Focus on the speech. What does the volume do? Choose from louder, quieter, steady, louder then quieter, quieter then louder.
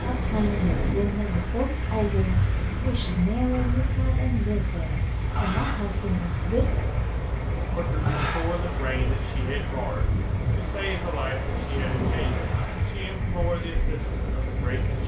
quieter.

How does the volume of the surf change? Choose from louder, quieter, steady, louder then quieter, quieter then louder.
steady.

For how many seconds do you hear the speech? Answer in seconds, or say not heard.
14 s.